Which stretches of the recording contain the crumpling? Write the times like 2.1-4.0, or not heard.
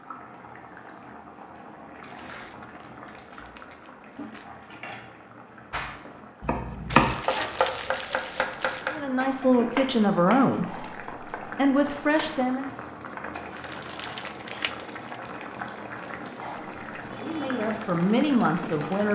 2.0-4.5, 6.9-9.0, 13.3-15.2.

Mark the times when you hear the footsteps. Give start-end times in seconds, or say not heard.
not heard.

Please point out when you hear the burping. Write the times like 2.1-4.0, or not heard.
not heard.